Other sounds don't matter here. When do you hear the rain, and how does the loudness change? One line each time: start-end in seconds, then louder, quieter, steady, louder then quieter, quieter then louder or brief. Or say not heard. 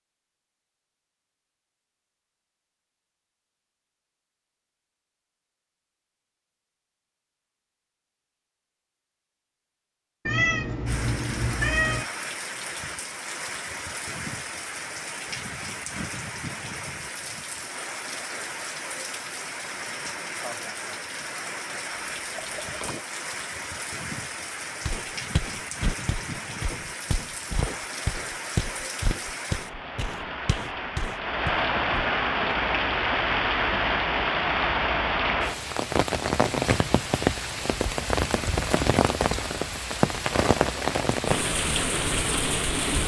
10.8-43.0 louder.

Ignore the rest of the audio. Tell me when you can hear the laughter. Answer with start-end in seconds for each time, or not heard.
20.4-20.9.